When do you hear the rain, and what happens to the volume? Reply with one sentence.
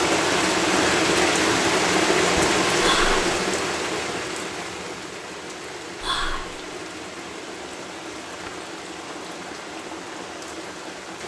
The rain can be heard from 0.0 to 11.2 s, getting quieter.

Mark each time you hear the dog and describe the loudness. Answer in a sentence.
You can't hear the dog here.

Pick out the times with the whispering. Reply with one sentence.
The whispering can be heard from 2.8 to 3.3 s and from 6.0 to 6.5 s.